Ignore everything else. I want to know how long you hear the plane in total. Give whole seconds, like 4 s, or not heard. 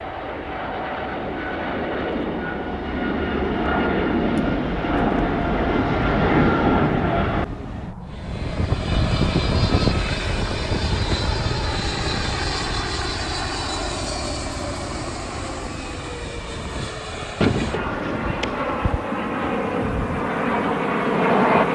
22 s.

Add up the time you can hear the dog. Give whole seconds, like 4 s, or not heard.
2 s.